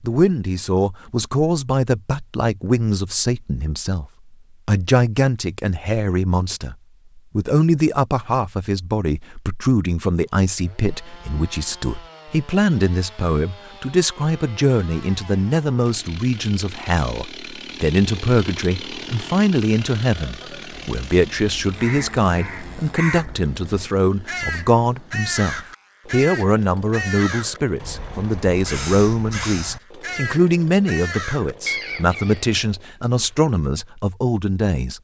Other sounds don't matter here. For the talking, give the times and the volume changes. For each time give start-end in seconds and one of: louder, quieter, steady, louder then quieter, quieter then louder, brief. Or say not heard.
0.0-4.0 steady
4.7-34.9 steady.